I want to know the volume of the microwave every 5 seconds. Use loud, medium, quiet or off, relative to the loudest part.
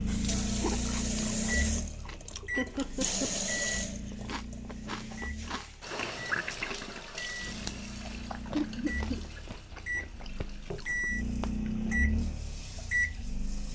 loud, medium, loud.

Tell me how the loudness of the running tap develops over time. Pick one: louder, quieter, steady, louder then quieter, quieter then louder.
quieter.